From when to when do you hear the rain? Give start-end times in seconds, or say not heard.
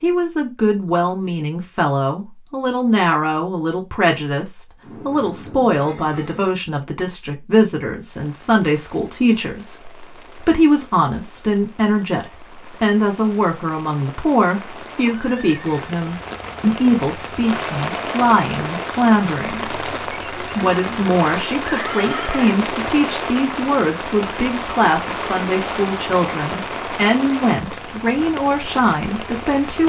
8.0-29.8.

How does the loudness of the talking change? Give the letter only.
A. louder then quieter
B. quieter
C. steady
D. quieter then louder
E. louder
C.